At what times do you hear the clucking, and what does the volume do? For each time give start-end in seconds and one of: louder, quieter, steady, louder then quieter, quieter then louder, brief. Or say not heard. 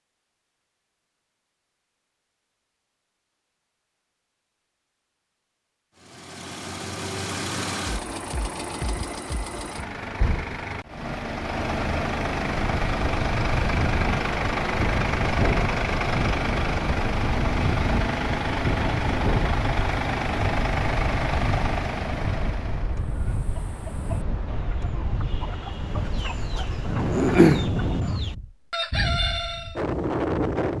23.0-29.8 louder then quieter.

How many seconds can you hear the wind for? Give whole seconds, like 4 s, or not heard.
18 s.